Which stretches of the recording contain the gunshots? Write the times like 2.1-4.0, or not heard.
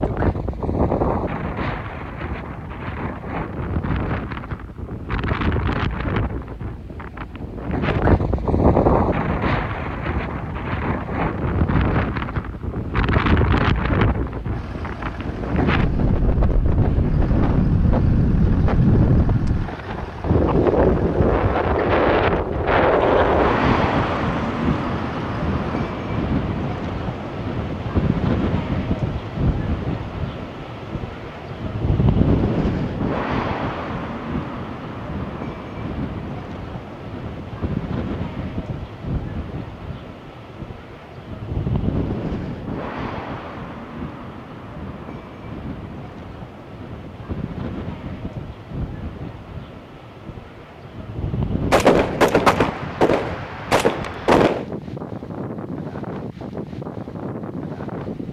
51.7-54.7.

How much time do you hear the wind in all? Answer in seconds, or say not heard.
58 s.